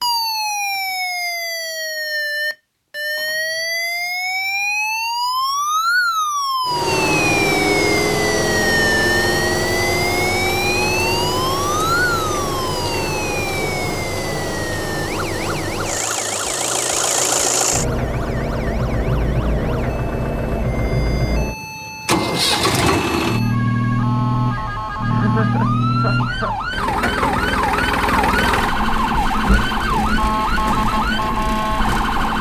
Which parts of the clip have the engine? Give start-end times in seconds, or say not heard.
6.7-32.3.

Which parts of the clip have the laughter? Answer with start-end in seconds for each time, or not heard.
25.1-26.6.